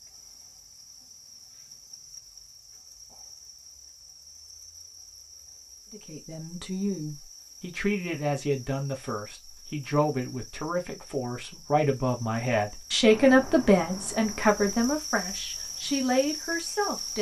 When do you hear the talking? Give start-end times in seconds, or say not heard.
5.9-17.1.